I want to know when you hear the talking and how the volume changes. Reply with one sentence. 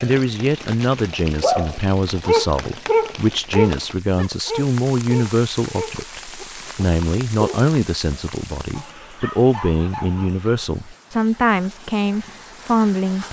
The talking can be heard from 0.0 to 13.2 s, at a steady volume.